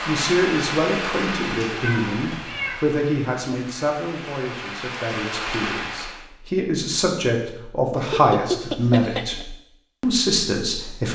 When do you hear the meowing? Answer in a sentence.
You can hear the meowing from 1.8 to 2.8 s and from 8.0 to 9.4 s.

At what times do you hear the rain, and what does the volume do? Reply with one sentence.
The rain can be heard from 0.0 to 6.2 s, getting quieter then louder.